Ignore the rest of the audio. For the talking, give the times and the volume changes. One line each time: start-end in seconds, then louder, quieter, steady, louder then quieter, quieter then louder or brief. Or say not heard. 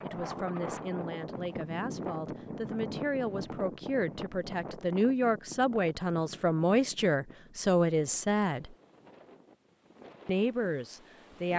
0.0-8.7 louder
10.2-11.5 brief.